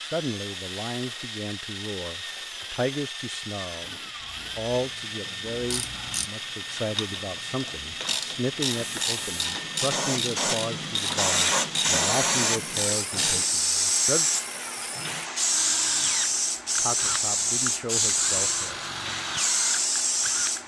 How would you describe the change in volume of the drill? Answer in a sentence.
The loudness of the drill stays about the same.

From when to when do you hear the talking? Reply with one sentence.
The talking can be heard from 0.0 to 14.2 s and from 16.8 to 18.8 s.